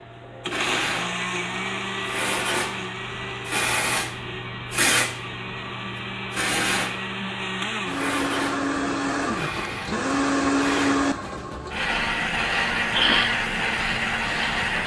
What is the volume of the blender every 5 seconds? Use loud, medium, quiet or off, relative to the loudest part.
medium, medium, loud.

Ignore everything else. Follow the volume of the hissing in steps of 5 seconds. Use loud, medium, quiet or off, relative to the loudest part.
loud, loud, medium.